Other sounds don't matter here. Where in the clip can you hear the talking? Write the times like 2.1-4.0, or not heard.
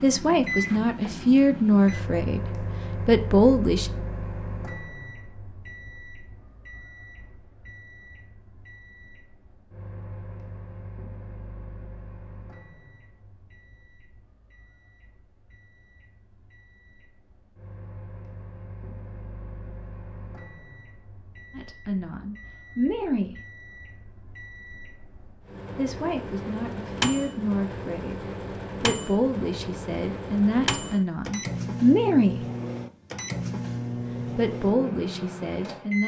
0.0-3.9, 21.5-23.4, 25.8-32.5, 34.4-36.0.